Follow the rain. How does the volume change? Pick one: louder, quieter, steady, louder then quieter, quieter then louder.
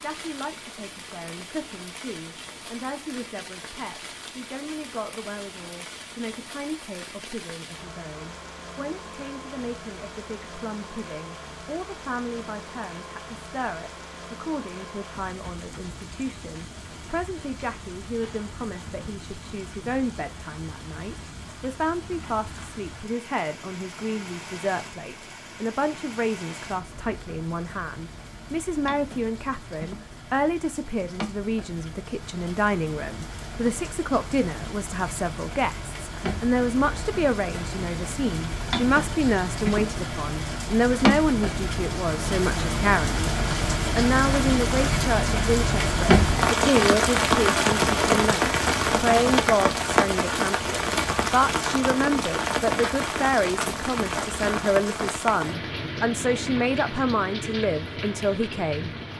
louder.